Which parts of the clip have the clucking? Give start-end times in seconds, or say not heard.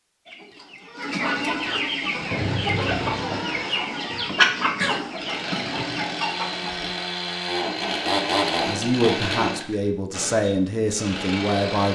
0.2-7.0.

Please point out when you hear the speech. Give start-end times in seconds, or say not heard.
8.7-11.8.